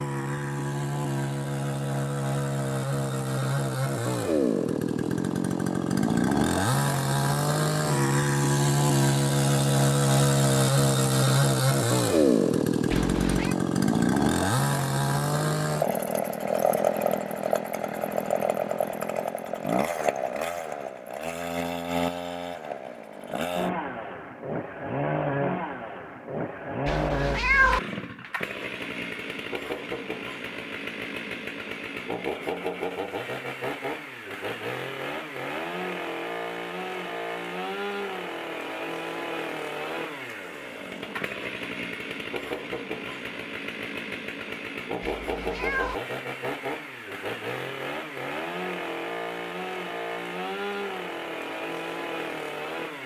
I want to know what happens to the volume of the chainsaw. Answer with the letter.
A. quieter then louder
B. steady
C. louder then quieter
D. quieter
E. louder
D.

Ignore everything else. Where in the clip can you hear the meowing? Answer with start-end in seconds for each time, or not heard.
12.9-13.6, 26.9-27.8, 45.0-46.0.